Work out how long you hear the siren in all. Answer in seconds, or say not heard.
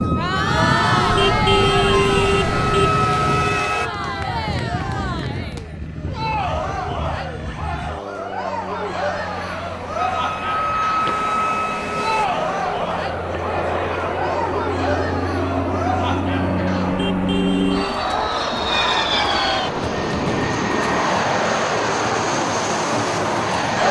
6 s.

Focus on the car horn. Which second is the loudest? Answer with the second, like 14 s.
2 s.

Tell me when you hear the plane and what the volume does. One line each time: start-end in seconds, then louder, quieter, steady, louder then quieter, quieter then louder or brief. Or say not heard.
0.0-23.8 quieter then louder.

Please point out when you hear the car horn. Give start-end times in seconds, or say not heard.
1.1-2.9, 16.9-18.1.